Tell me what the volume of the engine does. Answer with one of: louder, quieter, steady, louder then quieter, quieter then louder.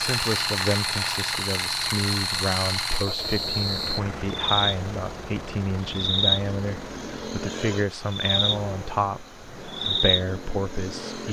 quieter.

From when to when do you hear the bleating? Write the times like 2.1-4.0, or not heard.
not heard.